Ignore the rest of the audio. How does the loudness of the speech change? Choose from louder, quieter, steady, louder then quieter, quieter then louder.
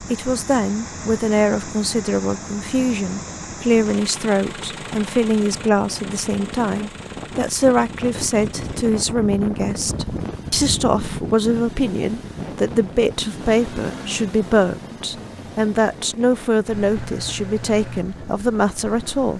steady.